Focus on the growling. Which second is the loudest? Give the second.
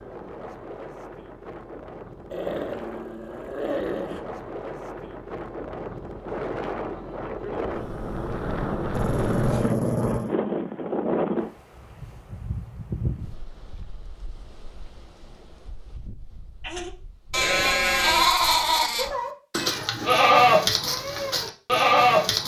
10 s.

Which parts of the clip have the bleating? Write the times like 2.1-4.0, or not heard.
16.6-22.4.